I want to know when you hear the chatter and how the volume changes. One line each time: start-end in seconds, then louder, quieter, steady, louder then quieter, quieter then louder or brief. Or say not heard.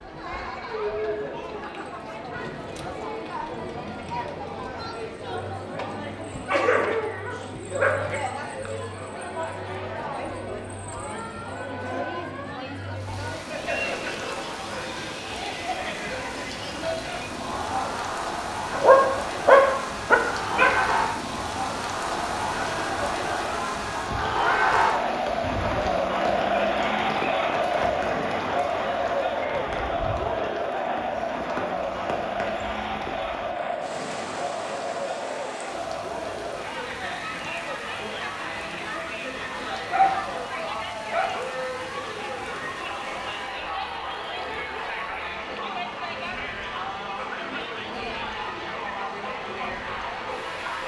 0.0-50.8 louder then quieter.